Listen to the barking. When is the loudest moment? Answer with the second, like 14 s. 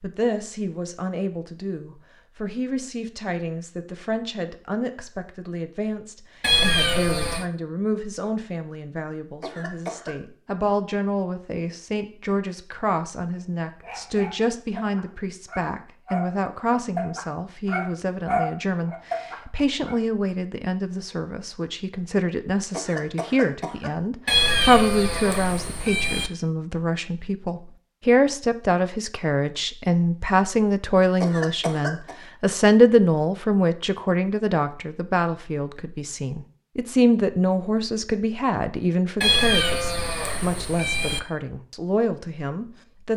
18 s.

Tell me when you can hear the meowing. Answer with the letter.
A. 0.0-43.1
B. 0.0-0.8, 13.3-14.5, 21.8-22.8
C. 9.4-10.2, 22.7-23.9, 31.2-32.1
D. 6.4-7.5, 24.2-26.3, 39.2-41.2
D.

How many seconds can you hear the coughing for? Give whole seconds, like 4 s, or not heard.
3 s.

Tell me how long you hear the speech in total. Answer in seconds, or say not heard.
43 s.